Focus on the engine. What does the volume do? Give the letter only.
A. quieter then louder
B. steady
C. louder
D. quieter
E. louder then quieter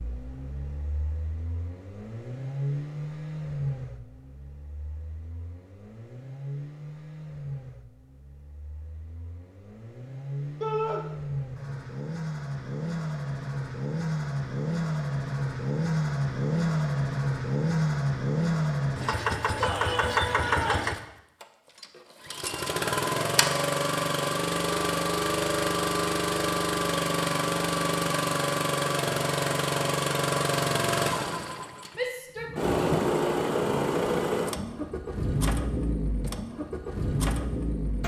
C.